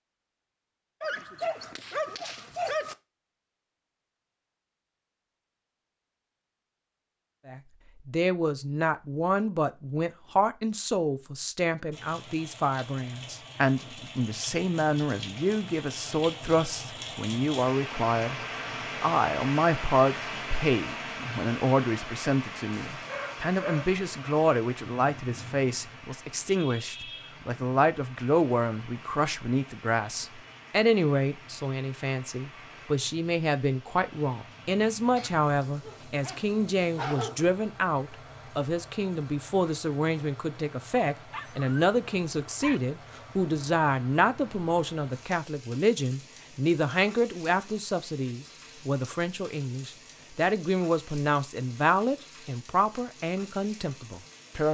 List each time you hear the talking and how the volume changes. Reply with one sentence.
You can hear the talking from 7.5 to 18.4 s, at a steady volume; and from 19.0 to 54.6 s, at a steady volume.